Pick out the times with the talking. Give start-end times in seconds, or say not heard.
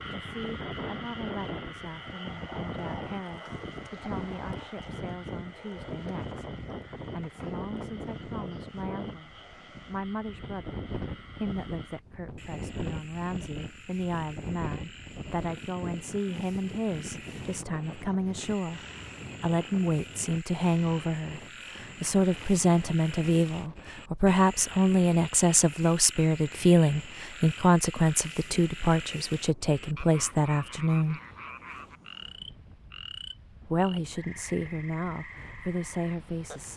0.1-18.8, 19.4-31.2, 33.6-36.7.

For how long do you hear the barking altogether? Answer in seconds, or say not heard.
not heard.